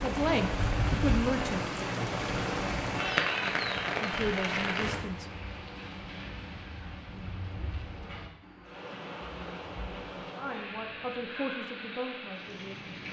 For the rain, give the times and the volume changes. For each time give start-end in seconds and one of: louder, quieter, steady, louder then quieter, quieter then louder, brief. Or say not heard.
0.0-13.0 quieter.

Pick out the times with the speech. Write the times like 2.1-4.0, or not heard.
0.0-1.6, 4.0-5.2, 10.3-13.0.